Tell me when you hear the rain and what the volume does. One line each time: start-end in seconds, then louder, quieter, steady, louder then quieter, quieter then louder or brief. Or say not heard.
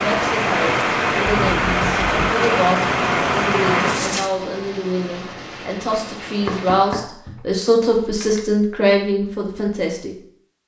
0.0-6.9 quieter.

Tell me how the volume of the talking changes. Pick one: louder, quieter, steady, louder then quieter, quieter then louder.
louder.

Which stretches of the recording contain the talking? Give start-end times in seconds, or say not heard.
0.0-10.2.